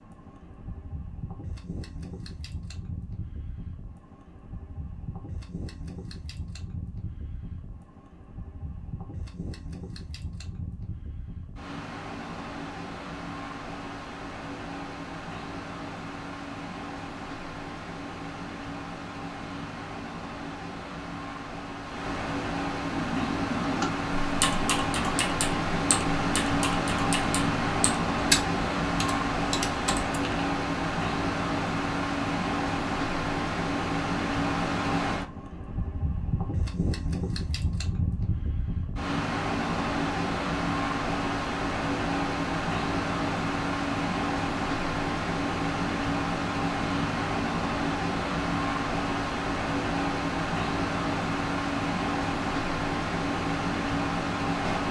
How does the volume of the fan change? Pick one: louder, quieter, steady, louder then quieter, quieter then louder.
louder.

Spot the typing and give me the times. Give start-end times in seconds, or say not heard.
22.9-30.4.